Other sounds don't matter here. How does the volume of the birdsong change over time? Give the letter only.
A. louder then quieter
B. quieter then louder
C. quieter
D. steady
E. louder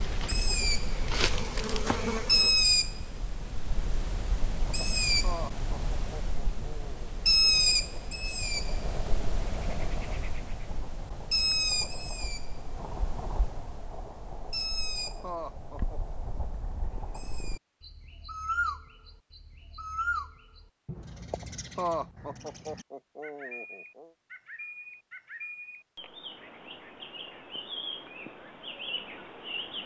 C.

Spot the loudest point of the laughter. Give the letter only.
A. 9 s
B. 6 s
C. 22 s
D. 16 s
C.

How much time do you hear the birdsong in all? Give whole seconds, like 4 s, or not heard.
30 s.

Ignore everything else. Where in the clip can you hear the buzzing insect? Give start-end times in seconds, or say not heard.
0.0-2.6.